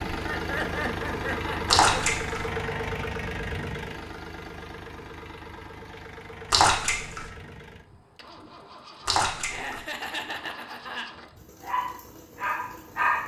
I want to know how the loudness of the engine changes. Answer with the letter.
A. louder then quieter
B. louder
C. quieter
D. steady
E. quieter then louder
C.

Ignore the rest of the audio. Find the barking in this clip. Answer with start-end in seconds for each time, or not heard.
11.6-13.2.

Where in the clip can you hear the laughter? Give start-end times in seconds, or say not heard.
0.1-2.0, 9.5-11.1.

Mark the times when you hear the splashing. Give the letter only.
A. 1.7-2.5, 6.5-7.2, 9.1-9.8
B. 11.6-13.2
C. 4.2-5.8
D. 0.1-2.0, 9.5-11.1
A.